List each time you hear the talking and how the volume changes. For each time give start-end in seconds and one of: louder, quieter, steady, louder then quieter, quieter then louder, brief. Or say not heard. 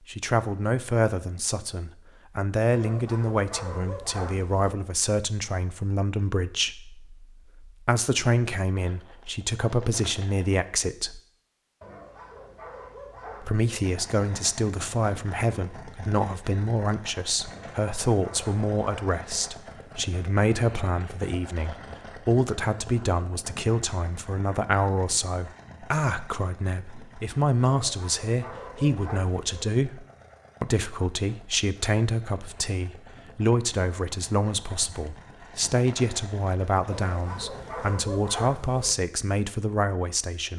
0.1-11.2 steady
13.4-40.5 steady.